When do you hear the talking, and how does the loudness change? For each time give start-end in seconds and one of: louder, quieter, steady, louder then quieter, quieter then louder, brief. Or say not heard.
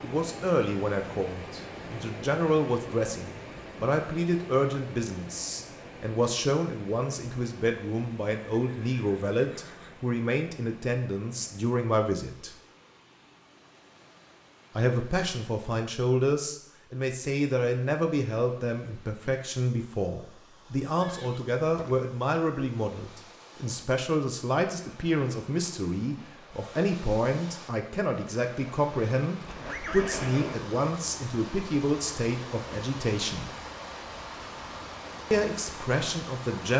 0.0-12.6 steady
14.8-33.5 steady
35.3-36.7 brief.